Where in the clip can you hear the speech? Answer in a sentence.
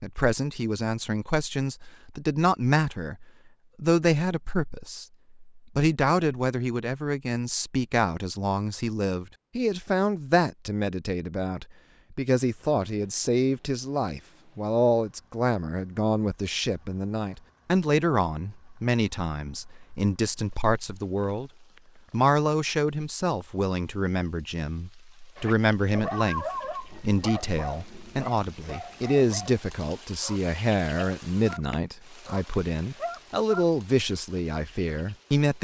The speech can be heard from 0.0 to 21.5 s and from 22.1 to 35.6 s.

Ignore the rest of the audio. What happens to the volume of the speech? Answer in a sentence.
The loudness of the speech stays about the same.